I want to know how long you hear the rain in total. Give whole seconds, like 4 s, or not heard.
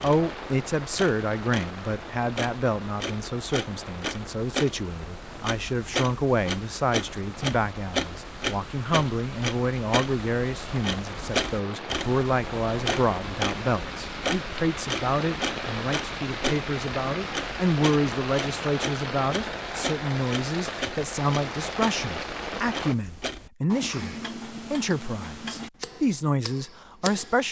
23 s.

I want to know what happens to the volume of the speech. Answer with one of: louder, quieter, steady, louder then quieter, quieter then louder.
steady.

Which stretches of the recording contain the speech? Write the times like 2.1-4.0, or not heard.
0.0-27.4.